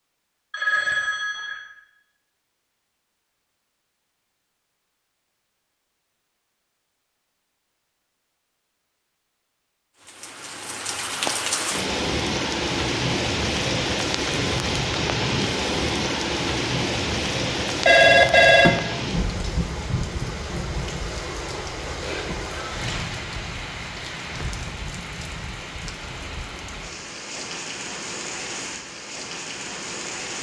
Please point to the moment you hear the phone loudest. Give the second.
18 s.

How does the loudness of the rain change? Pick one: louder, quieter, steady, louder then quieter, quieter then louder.
quieter.